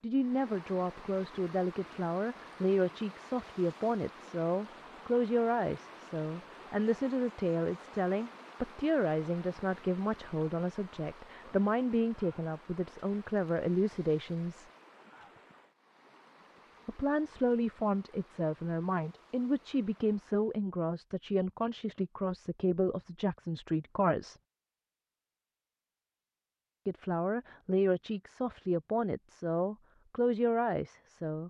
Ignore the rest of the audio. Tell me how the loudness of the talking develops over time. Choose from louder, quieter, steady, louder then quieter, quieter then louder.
steady.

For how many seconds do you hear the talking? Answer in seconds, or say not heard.
27 s.